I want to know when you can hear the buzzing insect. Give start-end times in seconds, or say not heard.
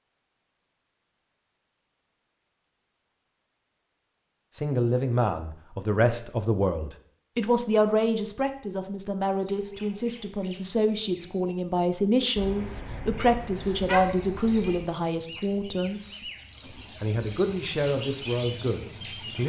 not heard.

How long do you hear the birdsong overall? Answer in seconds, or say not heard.
10 s.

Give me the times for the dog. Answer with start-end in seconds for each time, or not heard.
not heard.